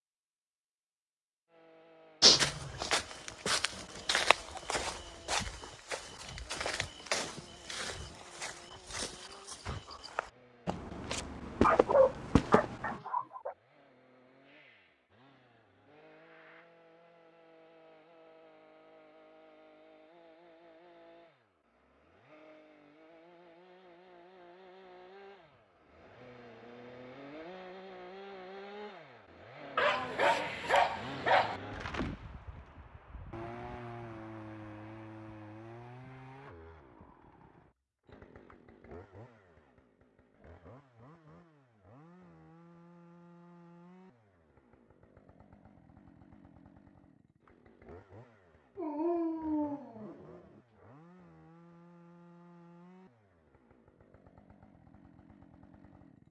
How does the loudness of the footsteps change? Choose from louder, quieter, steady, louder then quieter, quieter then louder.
quieter then louder.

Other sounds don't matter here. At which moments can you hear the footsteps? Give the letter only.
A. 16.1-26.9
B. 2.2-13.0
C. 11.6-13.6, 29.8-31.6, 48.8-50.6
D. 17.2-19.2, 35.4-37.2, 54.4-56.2
B.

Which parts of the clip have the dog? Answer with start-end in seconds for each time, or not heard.
11.6-13.6, 29.8-31.6, 48.8-50.6.